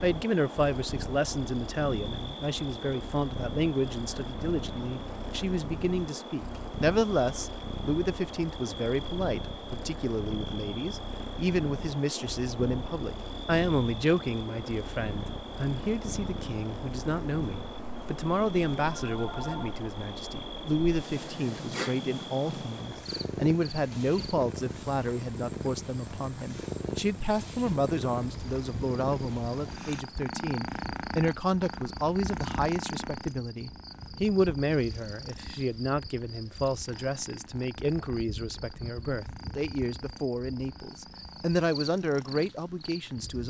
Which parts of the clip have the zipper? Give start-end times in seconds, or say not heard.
not heard.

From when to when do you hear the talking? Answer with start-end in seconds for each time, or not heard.
0.0-43.4.